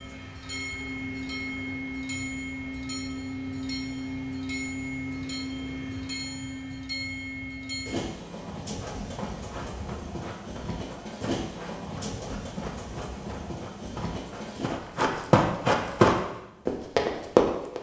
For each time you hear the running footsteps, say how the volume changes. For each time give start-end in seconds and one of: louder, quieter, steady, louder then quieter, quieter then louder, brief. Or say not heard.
8.7-17.7 louder.